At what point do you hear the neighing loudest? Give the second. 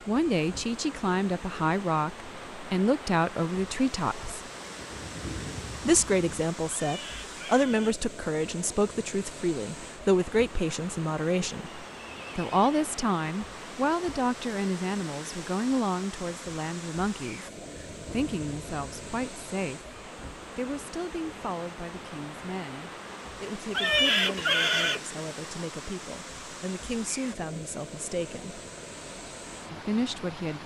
24 s.